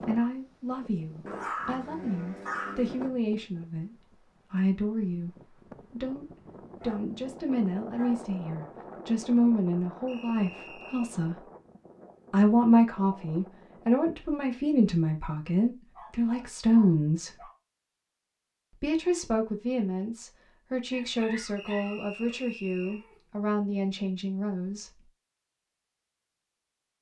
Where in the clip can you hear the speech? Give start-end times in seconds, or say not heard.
0.1-11.4, 12.3-17.4, 18.8-25.1.